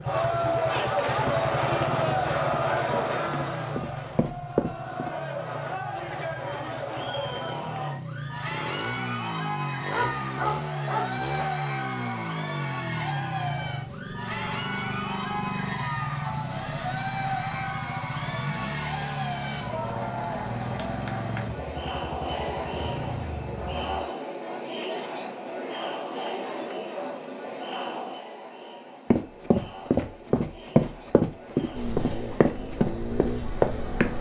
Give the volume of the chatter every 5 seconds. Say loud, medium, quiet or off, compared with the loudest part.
loud, medium, medium, medium, medium, medium, quiet.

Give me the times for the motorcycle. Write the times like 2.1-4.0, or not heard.
0.0-24.1, 31.7-34.1.